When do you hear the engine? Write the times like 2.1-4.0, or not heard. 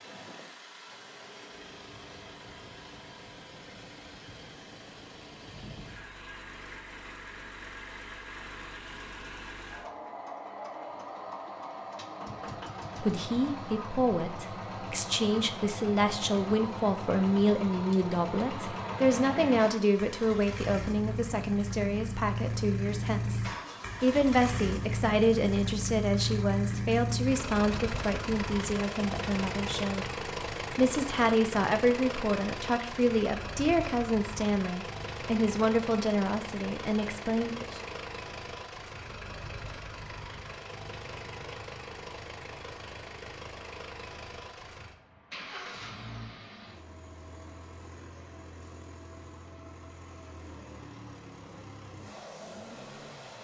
0.0-53.4.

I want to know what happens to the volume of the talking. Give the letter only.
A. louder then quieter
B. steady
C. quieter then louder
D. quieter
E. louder
B.